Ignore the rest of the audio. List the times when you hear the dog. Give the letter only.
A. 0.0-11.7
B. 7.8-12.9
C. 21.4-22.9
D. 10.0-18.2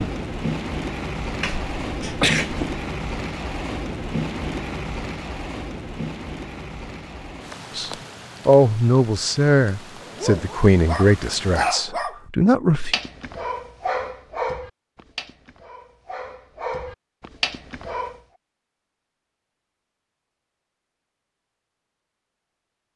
D.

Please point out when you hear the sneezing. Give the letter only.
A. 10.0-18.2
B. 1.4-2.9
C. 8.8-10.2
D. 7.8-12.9
B.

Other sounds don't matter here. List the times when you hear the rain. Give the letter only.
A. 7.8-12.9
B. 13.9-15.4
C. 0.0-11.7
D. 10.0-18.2
C.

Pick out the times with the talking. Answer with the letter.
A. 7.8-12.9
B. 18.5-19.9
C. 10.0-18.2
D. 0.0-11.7
A.